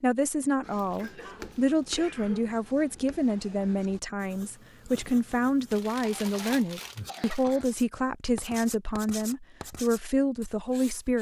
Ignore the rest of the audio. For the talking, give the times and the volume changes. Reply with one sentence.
You can hear the talking from 0.0 to 11.1 s, at a steady volume.